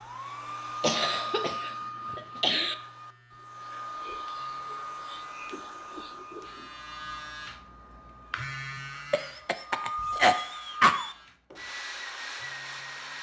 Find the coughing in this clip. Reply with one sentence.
You can hear the coughing from 0.8 to 2.8 s and from 9.1 to 11.2 s.